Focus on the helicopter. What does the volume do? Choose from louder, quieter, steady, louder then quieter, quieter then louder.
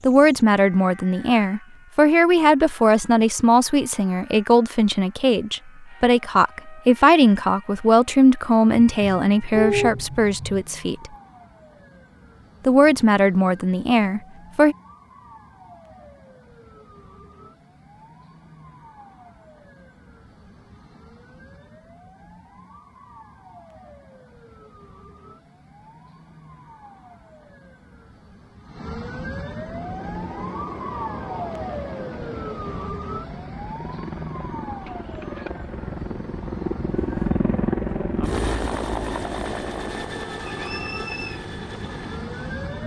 louder then quieter.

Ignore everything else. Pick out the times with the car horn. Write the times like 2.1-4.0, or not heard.
8.9-10.7, 34.9-35.5.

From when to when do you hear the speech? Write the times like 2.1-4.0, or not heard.
0.0-11.1, 12.7-14.8.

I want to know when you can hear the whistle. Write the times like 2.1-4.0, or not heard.
40.5-41.4.